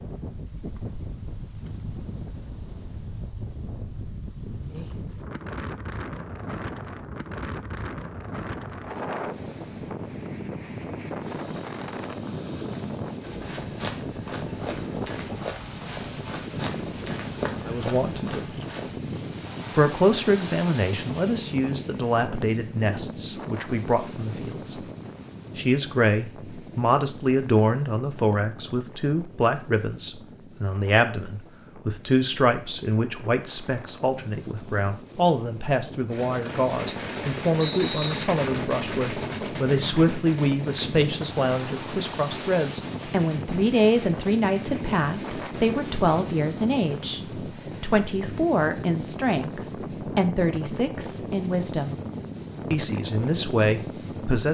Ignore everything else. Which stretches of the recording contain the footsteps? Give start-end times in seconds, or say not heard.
11.2-19.0.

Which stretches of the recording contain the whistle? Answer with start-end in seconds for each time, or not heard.
37.5-38.2.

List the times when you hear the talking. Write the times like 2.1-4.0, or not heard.
17.6-18.5, 19.8-24.8, 25.6-52.0, 52.7-54.4.